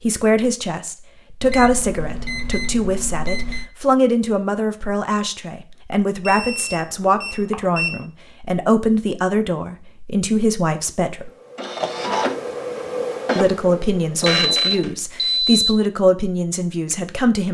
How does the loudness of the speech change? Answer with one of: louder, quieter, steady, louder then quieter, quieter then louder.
steady.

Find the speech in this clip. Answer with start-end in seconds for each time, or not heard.
0.0-11.3, 13.3-17.4.